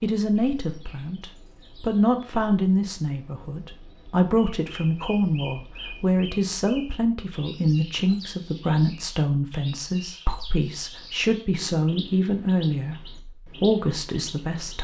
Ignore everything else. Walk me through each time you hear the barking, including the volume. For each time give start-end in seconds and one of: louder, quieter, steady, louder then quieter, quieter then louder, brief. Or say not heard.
not heard.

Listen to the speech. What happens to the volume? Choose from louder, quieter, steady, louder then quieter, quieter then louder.
steady.